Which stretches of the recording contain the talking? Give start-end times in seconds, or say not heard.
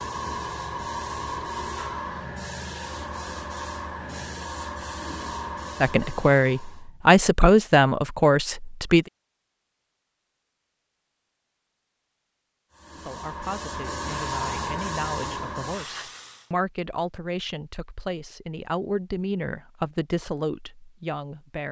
5.8-9.1, 12.9-21.6.